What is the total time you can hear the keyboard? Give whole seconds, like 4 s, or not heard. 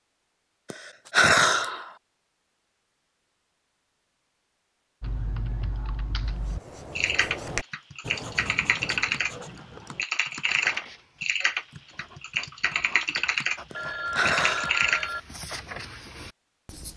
10 s.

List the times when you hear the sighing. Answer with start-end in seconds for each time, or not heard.
0.7-1.9, 13.7-14.9.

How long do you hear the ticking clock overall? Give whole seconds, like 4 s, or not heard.
not heard.